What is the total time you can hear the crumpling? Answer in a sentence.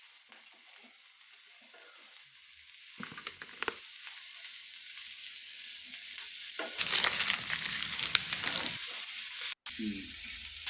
You can hear the crumpling for 3 seconds altogether.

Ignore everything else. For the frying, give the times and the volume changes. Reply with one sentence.
You can hear the frying from 0.0 to 10.6 s, getting louder.